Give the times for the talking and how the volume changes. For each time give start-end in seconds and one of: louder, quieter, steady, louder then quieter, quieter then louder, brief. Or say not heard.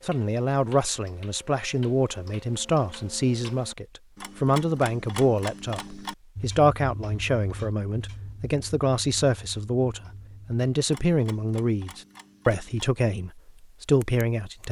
0.1-14.6 steady.